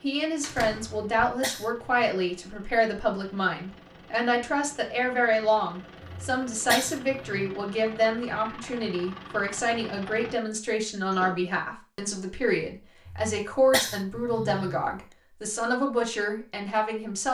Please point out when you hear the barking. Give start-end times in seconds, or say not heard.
not heard.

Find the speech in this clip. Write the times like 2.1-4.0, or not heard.
0.0-17.2.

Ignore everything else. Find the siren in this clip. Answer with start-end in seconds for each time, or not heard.
not heard.